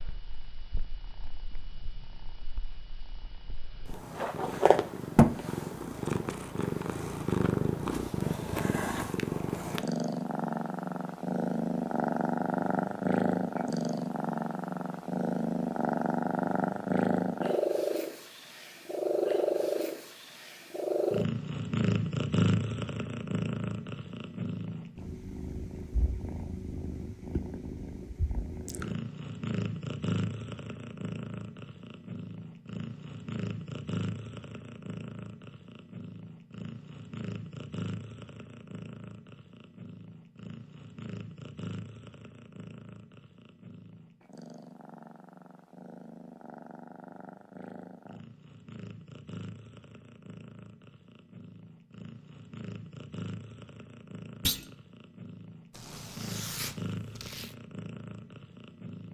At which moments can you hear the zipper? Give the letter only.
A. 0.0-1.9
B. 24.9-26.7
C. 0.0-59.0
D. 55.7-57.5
D.